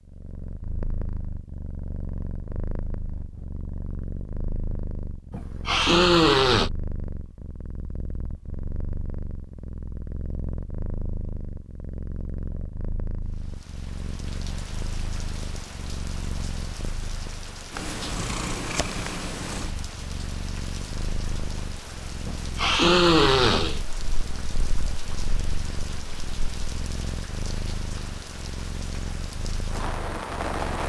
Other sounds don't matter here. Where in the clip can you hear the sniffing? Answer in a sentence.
You can hear the sniffing from 5.3 to 6.7 s and from 22.2 to 23.8 s.